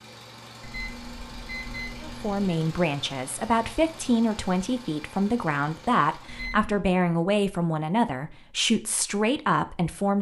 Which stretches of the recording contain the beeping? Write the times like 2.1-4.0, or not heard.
0.6-2.5, 6.2-6.9.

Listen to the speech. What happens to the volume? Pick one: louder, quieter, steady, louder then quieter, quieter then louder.
steady.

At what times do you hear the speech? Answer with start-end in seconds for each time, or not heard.
2.0-10.1.